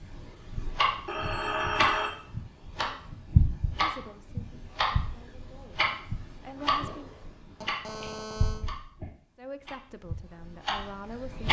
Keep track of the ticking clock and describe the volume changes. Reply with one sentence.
The loudness of the ticking clock goes down.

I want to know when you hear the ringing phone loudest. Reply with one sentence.
The volume of the ringing phone peaks at 2 seconds.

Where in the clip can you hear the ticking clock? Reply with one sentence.
You can hear the ticking clock from 0.0 to 11.4 s.